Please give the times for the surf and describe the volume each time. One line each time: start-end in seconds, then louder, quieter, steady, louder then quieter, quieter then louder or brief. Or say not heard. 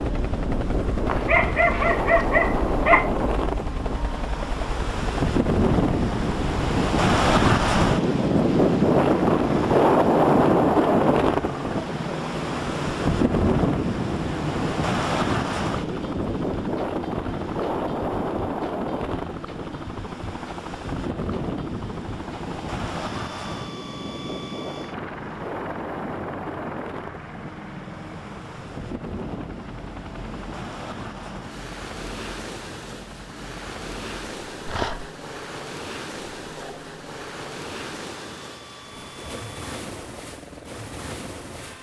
0.0-41.7 quieter.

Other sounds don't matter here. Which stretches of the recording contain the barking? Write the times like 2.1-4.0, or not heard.
1.1-3.1, 34.6-35.1.